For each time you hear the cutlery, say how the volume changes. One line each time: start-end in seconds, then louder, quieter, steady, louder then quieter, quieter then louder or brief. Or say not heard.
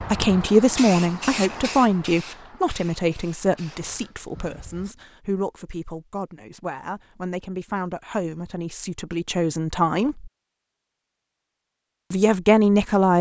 not heard.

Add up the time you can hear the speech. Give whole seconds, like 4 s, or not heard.
11 s.